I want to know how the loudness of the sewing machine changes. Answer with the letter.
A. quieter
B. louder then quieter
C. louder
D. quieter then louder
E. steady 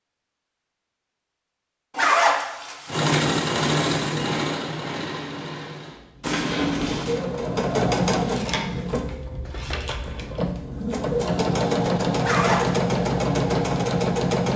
D.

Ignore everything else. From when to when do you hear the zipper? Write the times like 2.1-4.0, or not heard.
1.9-3.1, 6.2-7.2, 12.2-12.8.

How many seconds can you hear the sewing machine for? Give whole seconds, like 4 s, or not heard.
12 s.